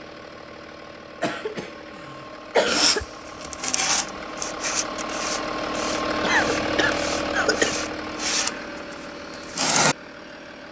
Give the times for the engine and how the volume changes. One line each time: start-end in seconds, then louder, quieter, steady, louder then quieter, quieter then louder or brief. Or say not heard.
0.0-10.6 louder then quieter.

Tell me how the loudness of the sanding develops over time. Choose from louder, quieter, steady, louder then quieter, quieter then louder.
quieter then louder.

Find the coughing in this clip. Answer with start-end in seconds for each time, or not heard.
1.2-3.0, 6.2-7.8.